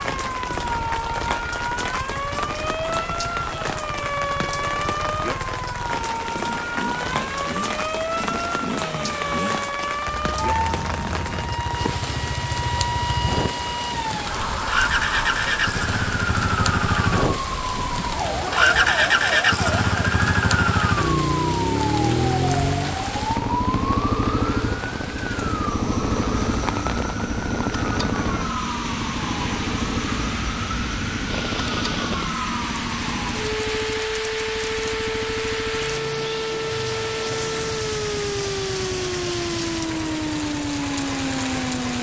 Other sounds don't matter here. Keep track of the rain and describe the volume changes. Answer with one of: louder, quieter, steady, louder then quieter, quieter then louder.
steady.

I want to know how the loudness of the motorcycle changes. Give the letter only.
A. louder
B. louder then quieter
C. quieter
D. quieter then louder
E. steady
B.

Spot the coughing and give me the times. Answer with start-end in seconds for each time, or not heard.
not heard.